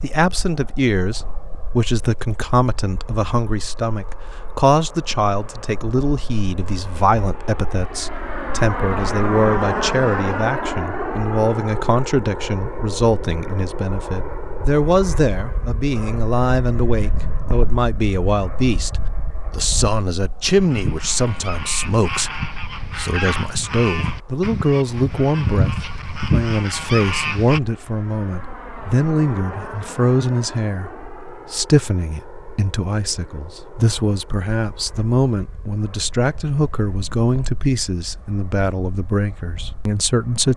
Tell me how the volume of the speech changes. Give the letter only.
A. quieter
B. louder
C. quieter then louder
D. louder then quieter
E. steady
E.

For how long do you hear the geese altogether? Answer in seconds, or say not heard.
7 s.